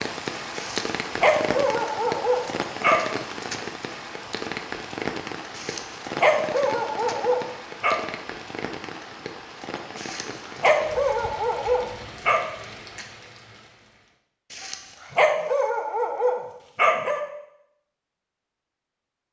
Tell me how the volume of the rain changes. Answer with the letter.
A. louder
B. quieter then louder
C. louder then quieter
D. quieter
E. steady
D.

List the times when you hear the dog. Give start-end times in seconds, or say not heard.
0.6-3.0, 5.5-8.0, 9.9-12.4, 14.5-17.2.